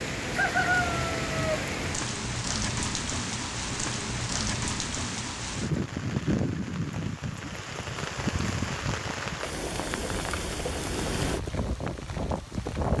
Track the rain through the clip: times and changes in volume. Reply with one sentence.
The rain can be heard from 0.0 to 12.9 s, at a steady volume.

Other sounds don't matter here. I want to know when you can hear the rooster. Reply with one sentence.
The rooster can be heard from 0.3 to 1.6 s.